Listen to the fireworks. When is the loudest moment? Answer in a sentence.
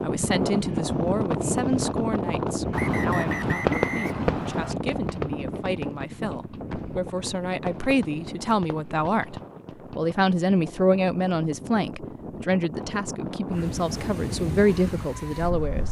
The volume of the fireworks peaks at 4 seconds.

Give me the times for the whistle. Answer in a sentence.
You can hear the whistle from 2.7 to 4.8 s.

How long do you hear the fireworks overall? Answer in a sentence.
You can hear the fireworks for 7 seconds altogether.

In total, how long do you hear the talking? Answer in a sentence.
The talking can be heard for 15 seconds in total.